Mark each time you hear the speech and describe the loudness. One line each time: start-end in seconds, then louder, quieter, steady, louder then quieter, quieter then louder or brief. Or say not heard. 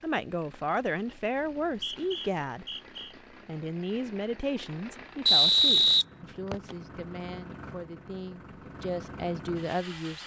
0.0-2.6 brief
3.5-10.2 quieter then louder.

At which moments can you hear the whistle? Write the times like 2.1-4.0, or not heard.
1.4-3.1, 5.2-6.8.